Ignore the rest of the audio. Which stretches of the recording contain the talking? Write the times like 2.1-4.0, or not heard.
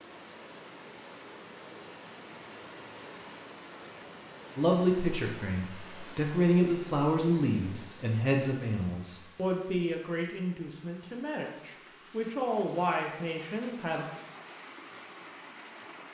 4.5-14.1.